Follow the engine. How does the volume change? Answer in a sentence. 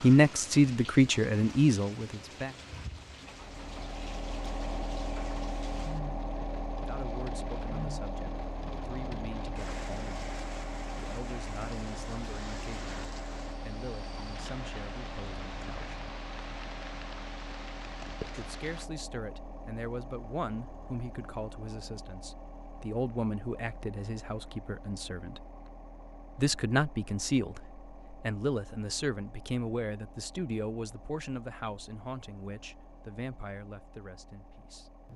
The loudness of the engine goes down.